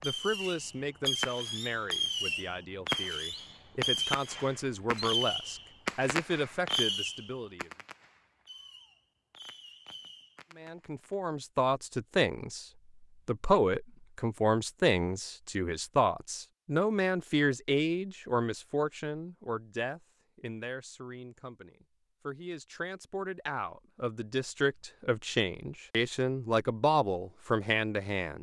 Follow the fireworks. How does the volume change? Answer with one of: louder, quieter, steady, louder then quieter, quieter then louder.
quieter.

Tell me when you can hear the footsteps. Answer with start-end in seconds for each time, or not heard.
not heard.